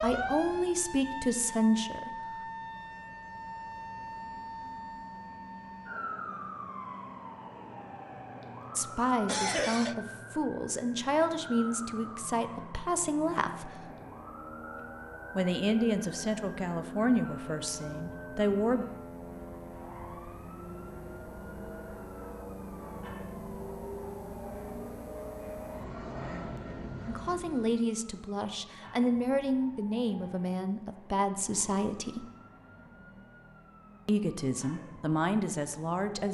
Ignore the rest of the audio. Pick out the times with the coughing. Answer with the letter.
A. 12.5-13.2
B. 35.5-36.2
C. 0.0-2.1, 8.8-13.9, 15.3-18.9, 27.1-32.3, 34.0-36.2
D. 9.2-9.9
D.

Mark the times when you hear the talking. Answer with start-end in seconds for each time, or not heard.
0.0-2.1, 8.8-13.9, 15.3-18.9, 27.1-32.3, 34.0-36.2.